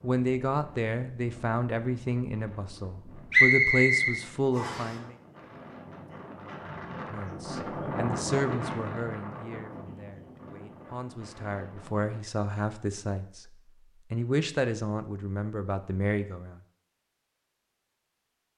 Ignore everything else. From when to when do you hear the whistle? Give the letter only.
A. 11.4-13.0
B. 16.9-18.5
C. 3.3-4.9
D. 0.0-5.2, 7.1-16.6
C.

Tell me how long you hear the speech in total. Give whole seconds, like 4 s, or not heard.
15 s.